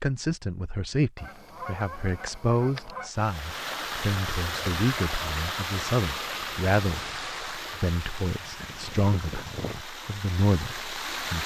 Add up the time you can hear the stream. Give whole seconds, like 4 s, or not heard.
8 s.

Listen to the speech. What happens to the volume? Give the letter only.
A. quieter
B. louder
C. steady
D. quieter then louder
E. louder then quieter
C.